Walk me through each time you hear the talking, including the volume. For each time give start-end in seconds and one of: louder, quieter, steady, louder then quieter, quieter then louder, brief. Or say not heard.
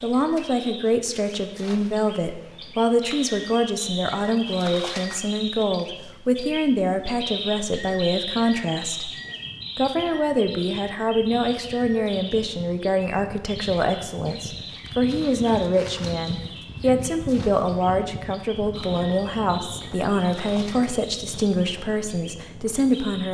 0.0-9.1 steady
9.8-23.3 steady.